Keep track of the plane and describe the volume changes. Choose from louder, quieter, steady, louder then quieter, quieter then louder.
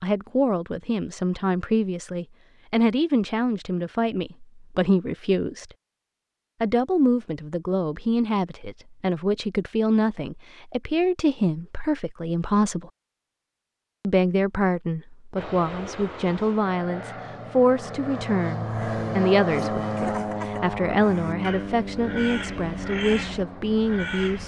louder then quieter.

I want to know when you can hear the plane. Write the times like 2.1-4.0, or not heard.
15.3-24.4.